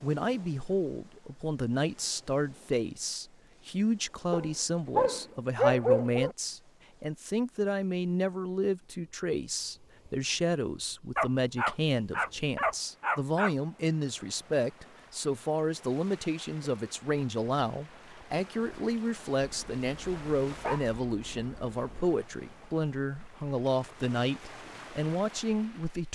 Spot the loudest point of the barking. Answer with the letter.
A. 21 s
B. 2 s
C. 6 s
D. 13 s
C.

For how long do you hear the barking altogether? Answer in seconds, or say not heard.
7 s.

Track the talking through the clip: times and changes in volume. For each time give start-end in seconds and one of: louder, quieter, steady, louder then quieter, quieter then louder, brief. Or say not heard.
0.0-26.1 steady.